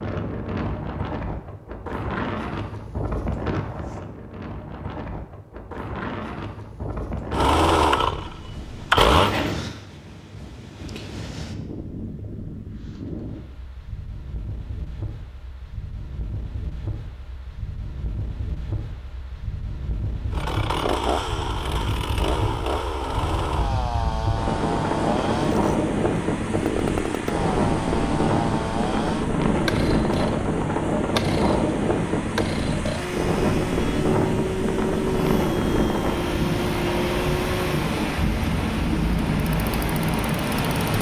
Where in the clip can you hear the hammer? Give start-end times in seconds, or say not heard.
not heard.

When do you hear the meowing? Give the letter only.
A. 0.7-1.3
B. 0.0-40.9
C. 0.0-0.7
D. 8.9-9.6
D.